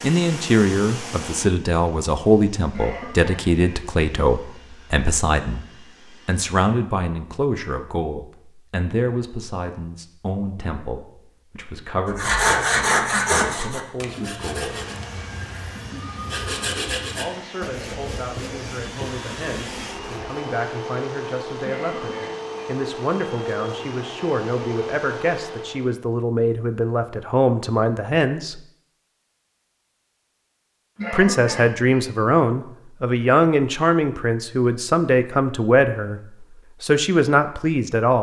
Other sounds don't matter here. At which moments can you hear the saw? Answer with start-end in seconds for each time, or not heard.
12.1-20.4.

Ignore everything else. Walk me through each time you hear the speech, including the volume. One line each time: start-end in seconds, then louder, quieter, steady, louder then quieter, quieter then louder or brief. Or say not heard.
0.0-14.8 quieter
17.1-28.6 louder
31.1-38.1 steady.